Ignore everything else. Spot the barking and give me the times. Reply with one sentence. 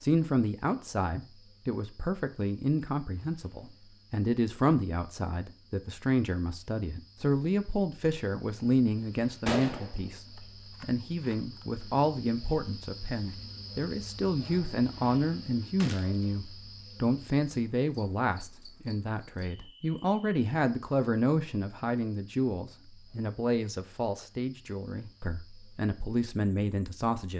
You can't hear the barking here.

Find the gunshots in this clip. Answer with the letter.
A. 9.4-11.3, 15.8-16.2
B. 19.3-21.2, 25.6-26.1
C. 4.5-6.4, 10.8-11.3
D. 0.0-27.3
A.